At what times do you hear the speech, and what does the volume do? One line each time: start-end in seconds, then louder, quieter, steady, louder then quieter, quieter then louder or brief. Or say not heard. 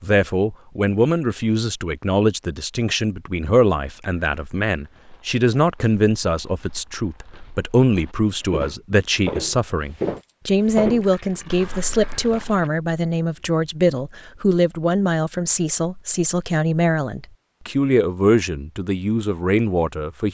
0.0-20.2 steady.